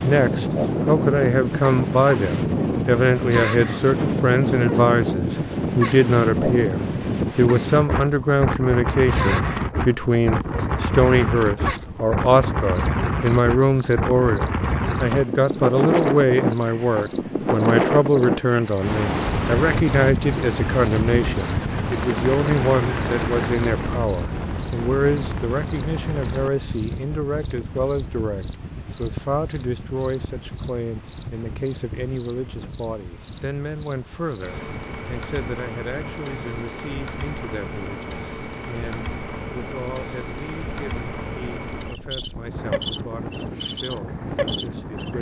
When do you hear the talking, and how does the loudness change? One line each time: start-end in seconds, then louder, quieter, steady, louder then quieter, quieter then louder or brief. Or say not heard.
0.0-45.1 quieter.